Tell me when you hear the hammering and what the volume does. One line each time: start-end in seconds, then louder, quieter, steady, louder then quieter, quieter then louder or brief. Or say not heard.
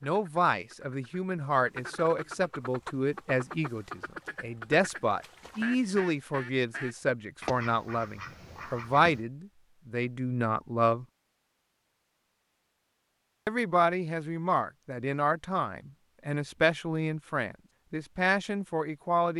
not heard.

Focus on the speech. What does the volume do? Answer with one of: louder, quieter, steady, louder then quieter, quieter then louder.
steady.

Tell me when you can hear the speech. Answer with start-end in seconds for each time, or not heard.
0.0-11.1, 13.4-19.3.